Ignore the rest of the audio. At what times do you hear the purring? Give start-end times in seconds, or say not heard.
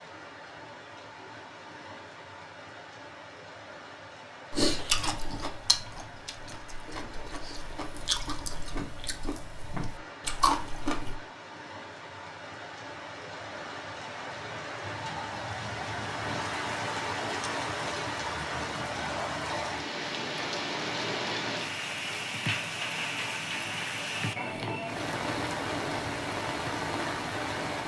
not heard.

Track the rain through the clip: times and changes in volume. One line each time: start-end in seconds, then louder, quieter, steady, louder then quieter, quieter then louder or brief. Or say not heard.
0.0-27.8 louder.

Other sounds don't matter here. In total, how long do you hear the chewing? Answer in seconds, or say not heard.
7 s.